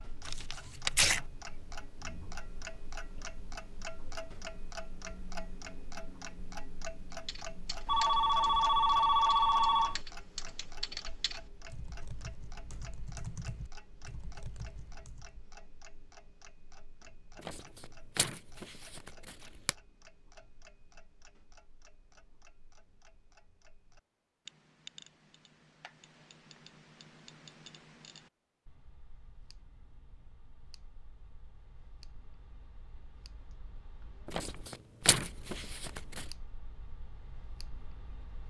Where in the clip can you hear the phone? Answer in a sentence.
The phone can be heard from 7.8 to 10.0 s.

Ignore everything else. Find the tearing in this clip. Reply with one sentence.
You can hear the tearing from 0.2 to 1.2 s, from 17.4 to 19.8 s and from 34.2 to 36.2 s.